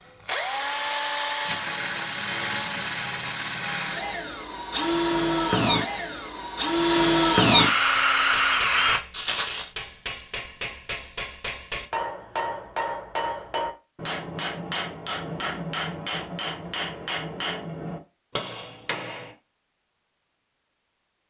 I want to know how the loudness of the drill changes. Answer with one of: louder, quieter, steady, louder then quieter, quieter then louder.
louder.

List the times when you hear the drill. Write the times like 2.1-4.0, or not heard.
0.1-9.0.